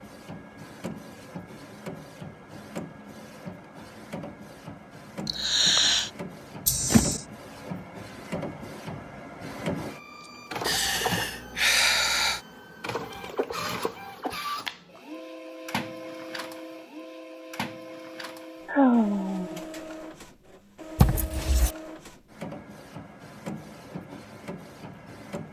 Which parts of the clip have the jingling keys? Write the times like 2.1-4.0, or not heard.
6.7-7.2, 20.9-21.7.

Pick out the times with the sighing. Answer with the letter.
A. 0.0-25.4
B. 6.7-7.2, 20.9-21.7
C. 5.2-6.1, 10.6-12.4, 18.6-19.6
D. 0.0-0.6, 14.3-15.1
C.